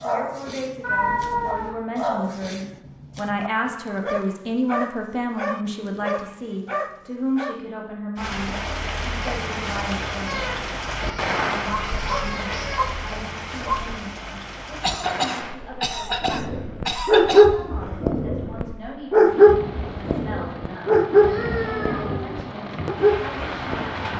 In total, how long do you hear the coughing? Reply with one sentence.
The coughing can be heard for 3 seconds in total.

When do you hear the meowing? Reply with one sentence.
You can hear the meowing from 0.8 to 1.7 s, from 10.2 to 12.9 s and from 21.2 to 22.4 s.